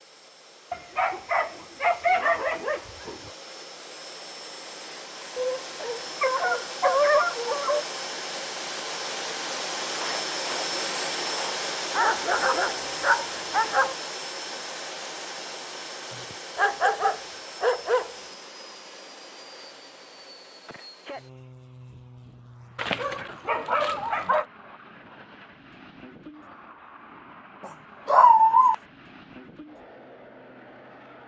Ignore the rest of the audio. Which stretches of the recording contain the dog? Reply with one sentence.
The dog can be heard from 0.7 to 3.3 s, from 5.3 to 7.8 s, from 11.9 to 13.9 s, from 16.6 to 18.1 s, from 22.8 to 24.4 s and from 27.6 to 28.8 s.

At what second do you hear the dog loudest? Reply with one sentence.
The loudest moment of the dog is at 28 seconds.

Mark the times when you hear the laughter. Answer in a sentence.
You can hear the laughter from 10.0 to 11.6 s.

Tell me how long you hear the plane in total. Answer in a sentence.
You can hear the plane for 31 seconds altogether.